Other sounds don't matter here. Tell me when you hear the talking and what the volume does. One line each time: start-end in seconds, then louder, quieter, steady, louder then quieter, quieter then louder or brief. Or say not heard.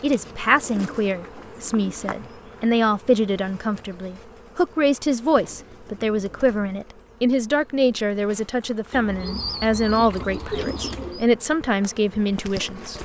0.0-13.0 steady.